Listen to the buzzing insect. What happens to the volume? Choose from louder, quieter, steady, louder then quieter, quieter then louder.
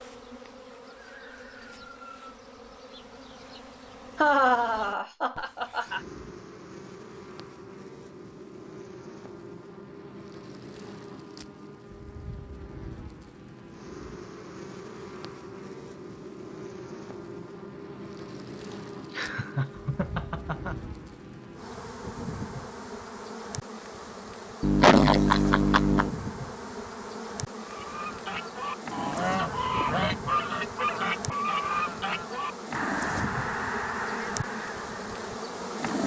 louder.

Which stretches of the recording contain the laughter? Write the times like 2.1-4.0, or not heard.
4.2-6.0, 19.1-20.8, 24.6-26.1.